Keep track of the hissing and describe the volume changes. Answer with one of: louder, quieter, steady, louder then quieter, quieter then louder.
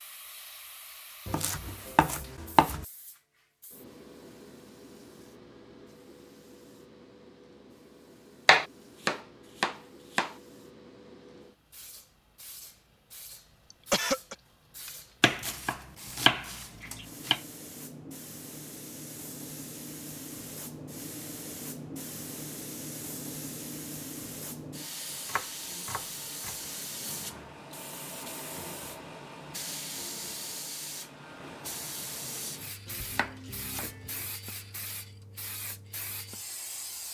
louder.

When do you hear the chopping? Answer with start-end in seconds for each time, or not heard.
1.2-2.9, 8.4-10.3, 15.2-17.4, 25.1-26.6, 32.9-34.3.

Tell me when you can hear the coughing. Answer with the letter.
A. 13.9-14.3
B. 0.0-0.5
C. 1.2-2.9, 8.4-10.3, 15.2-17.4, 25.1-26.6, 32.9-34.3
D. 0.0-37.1
A.